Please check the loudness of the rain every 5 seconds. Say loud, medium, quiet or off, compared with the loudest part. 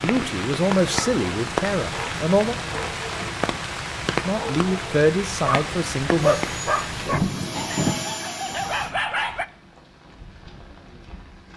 loud, loud, quiet.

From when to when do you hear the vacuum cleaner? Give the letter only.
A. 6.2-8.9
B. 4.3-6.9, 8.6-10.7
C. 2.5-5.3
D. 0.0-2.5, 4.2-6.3
A.